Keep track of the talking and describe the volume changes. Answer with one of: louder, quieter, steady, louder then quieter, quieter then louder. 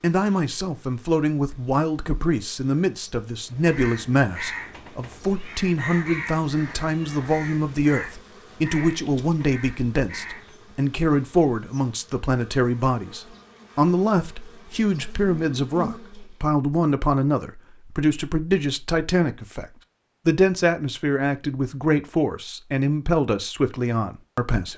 steady.